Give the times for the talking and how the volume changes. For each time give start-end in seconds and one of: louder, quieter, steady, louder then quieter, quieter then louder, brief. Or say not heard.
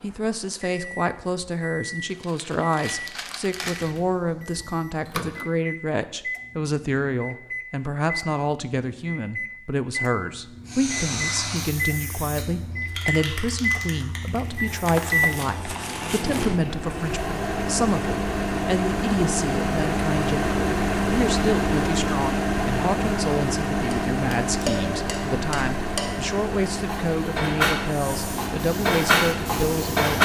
0.0-30.1 steady.